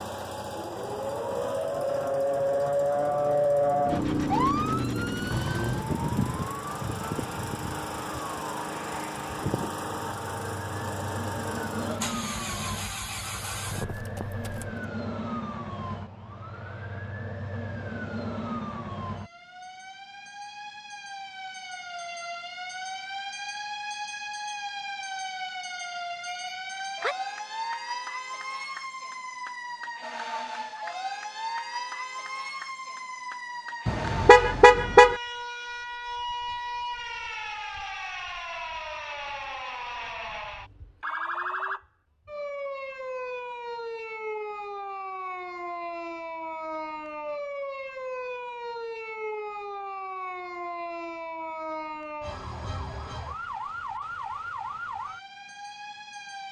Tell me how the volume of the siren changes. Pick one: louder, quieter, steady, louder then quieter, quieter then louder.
quieter.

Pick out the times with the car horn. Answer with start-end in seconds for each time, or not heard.
33.9-35.2.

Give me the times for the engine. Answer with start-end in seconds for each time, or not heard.
0.0-14.8.